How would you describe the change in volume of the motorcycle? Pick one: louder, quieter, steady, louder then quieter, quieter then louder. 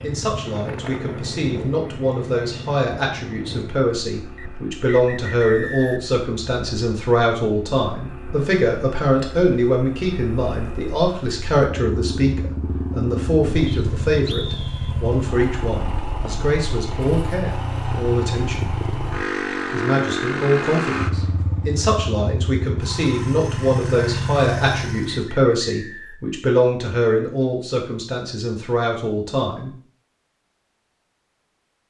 quieter then louder.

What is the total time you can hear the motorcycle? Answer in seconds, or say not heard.
25 s.